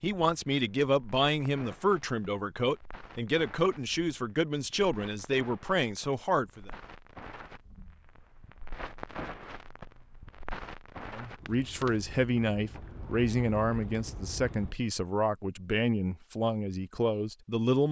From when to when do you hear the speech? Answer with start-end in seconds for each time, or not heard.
0.0-6.7, 11.1-17.8.